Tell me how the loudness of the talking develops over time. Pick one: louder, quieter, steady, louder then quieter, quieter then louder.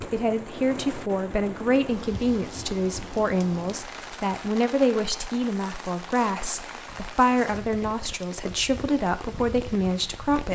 steady.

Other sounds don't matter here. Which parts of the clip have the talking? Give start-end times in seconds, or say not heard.
0.0-10.5.